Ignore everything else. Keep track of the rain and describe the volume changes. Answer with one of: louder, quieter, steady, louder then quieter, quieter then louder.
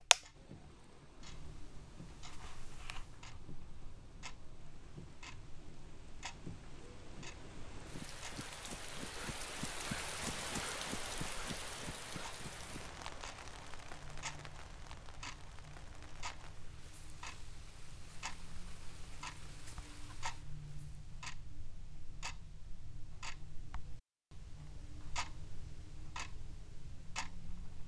louder then quieter.